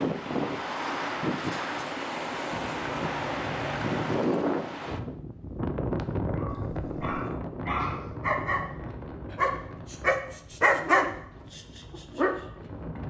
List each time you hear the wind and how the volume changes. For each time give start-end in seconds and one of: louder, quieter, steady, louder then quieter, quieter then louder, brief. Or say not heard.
0.0-13.0 quieter.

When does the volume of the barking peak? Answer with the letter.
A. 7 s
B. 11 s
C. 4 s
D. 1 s
B.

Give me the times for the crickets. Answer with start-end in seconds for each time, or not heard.
not heard.